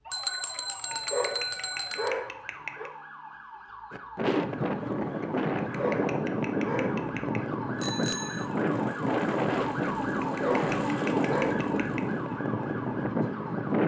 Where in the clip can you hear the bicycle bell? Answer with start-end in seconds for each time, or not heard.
0.1-2.1, 7.8-8.4.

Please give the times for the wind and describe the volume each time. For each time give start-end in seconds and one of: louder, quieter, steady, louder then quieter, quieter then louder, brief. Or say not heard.
3.9-13.8 steady.